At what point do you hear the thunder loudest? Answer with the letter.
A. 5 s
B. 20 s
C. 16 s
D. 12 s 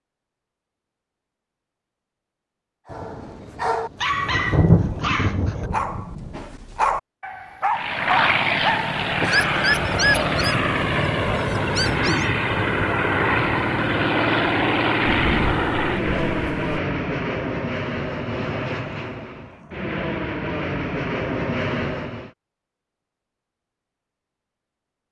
A.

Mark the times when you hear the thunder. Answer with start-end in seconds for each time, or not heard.
2.9-6.4, 15.1-16.8.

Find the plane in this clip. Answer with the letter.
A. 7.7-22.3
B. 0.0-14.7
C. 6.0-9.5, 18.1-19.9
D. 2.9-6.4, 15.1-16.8
A.